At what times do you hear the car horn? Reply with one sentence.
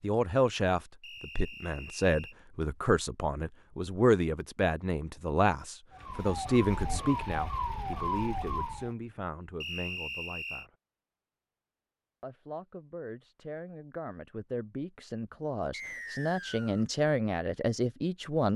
You can't hear the car horn here.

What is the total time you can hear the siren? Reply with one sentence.
The siren can be heard for 3 seconds in total.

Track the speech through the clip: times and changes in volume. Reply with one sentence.
The speech can be heard from 0.0 to 10.7 s, getting quieter; and from 12.2 to 18.5 s, getting louder.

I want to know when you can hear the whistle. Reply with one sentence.
The whistle can be heard from 1.0 to 2.4 s, from 9.6 to 10.7 s and from 15.7 to 16.9 s.